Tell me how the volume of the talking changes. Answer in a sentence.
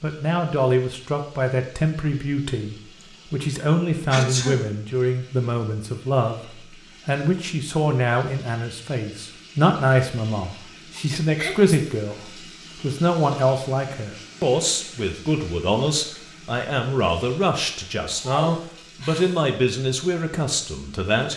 The loudness of the talking stays about the same.